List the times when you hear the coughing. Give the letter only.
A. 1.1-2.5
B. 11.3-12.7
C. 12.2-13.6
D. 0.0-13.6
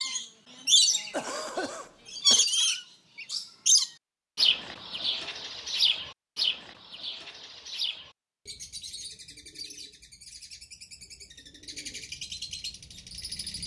A.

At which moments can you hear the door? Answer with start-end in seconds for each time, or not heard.
not heard.